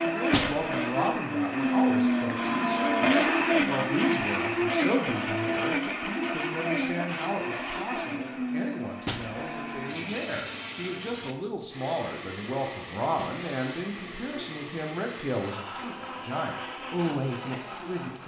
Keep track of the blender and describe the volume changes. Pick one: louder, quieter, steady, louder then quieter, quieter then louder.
quieter.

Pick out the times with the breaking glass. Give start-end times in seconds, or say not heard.
0.3-1.1, 9.1-9.8, 13.2-13.8.